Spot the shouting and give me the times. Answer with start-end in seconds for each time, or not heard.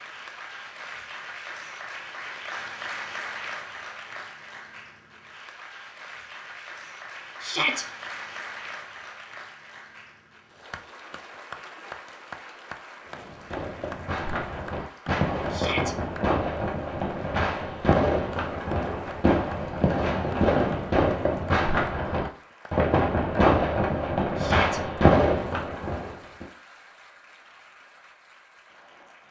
7.4-7.8, 15.5-15.9, 24.4-24.8.